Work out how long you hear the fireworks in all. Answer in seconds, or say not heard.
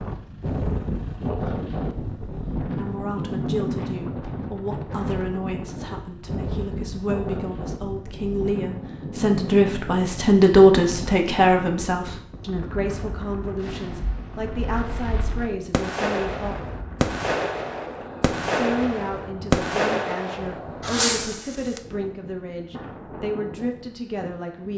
8 s.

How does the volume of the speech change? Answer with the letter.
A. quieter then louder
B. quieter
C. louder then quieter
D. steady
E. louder
C.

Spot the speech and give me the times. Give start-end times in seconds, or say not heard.
2.7-16.6, 18.6-24.7.